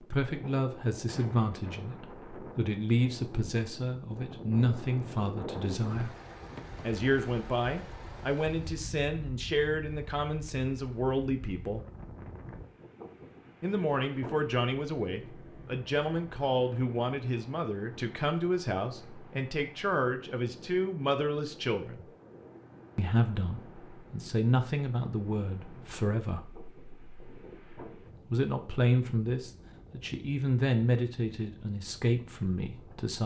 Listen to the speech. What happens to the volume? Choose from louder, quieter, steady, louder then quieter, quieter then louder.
steady.